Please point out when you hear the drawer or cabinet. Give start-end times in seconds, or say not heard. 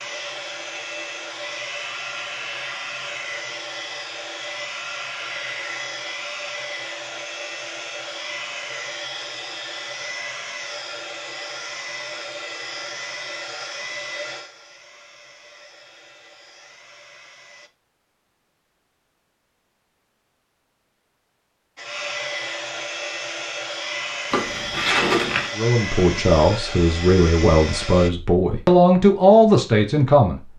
24.3-25.5.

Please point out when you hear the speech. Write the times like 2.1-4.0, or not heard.
25.6-30.4.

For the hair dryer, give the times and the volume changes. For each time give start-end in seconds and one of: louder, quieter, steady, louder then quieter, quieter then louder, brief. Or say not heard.
0.0-17.7 quieter
21.8-28.1 steady.